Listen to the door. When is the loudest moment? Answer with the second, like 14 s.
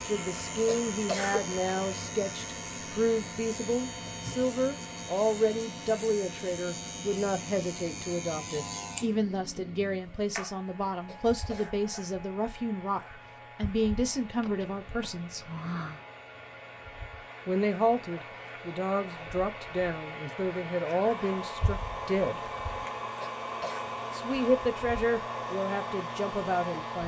16 s.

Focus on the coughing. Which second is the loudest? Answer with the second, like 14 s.
1 s.